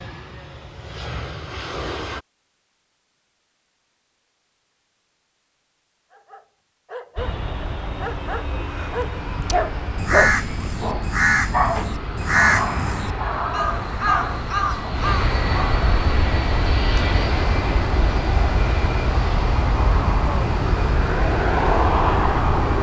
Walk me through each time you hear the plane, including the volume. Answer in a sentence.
The plane can be heard briefly from 0.0 to 2.2 s; and from 7.2 to 22.7 s, getting louder.